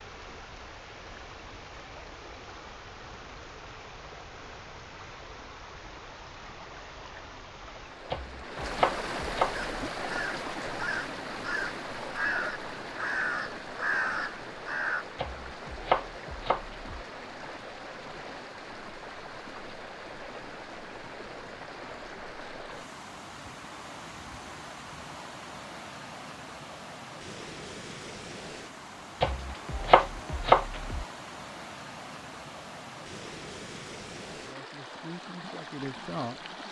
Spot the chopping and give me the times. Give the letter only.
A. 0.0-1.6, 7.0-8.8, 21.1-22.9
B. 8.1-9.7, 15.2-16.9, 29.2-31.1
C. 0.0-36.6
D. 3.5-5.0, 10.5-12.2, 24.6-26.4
B.